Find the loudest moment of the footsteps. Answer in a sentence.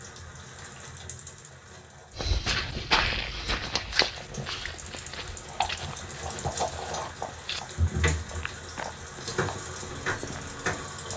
The loudest moment of the footsteps is at 3 seconds.